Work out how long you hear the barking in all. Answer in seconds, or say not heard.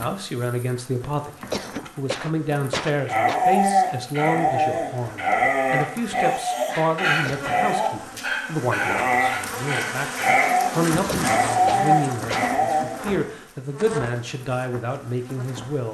10 s.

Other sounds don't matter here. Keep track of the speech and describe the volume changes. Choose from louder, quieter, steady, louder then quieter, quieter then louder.
steady.